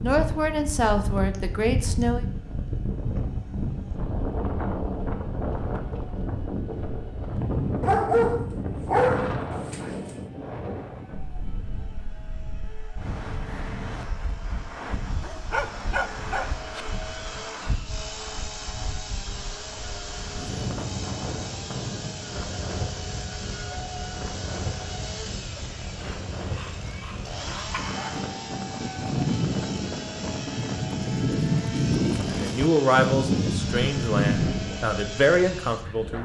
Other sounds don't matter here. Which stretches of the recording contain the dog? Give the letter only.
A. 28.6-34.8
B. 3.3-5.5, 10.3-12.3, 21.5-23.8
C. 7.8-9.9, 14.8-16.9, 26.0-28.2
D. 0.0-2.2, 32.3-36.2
C.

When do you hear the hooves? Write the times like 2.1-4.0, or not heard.
28.6-34.8.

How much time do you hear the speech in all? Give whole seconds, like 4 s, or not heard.
6 s.